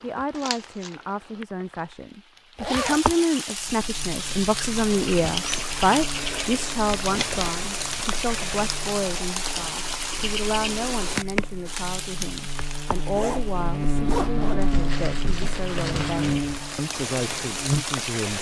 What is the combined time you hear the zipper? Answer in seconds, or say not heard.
2 s.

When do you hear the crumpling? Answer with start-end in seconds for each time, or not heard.
0.3-0.9, 6.8-8.1, 14.6-16.4.